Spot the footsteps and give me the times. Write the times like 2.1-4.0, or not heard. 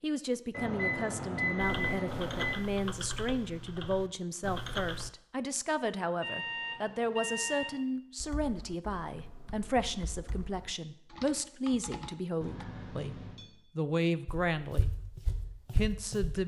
14.2-16.4.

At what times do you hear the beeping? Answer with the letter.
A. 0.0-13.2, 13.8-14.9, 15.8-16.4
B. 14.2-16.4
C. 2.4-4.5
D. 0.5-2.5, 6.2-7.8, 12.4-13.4
D.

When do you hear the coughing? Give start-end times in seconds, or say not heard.
not heard.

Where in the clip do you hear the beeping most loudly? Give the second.
2 s.